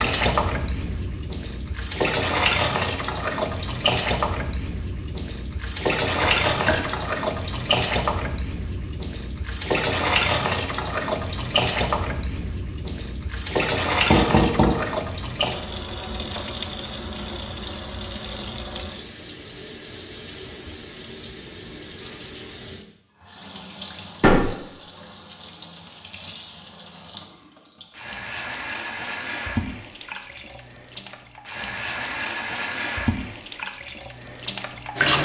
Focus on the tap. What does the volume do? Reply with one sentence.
The volume of the tap goes down, then up.